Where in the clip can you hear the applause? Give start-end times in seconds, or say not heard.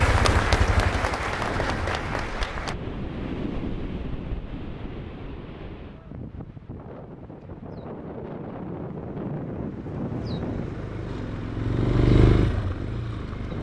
0.0-2.8.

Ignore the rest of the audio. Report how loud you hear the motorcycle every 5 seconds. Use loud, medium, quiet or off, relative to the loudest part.
medium, off, loud.